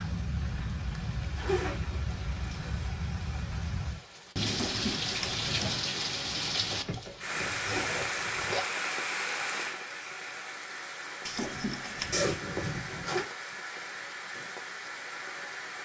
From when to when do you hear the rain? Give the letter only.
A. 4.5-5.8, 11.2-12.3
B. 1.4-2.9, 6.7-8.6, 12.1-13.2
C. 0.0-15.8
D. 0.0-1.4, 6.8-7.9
C.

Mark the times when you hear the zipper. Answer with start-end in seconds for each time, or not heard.
1.4-2.9, 6.7-8.6, 12.1-13.2.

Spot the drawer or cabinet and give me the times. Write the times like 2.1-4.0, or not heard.
4.5-5.8, 11.2-12.3.